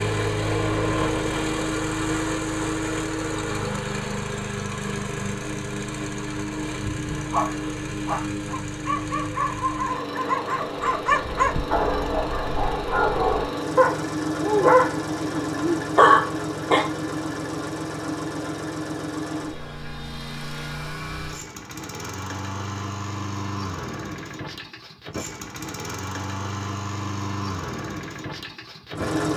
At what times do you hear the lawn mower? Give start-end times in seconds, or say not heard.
0.0-29.3.